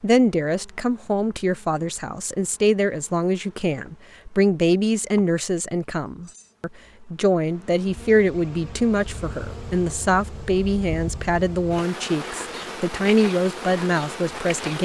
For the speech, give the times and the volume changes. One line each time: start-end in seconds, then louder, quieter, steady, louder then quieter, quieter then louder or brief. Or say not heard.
0.0-14.7 steady.